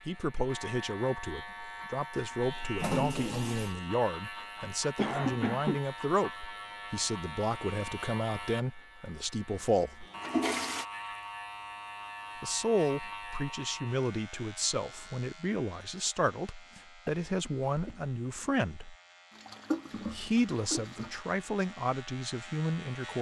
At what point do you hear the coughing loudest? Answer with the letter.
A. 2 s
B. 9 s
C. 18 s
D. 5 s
D.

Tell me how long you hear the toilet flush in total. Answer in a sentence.
The toilet flush can be heard for 4 seconds in total.